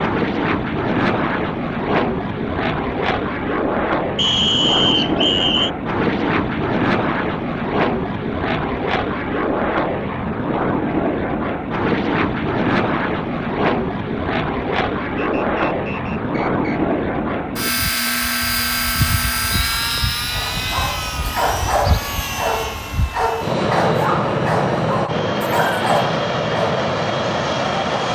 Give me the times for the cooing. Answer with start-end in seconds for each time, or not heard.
not heard.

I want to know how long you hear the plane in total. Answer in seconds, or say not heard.
28 s.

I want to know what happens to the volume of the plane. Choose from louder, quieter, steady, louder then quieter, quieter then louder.
steady.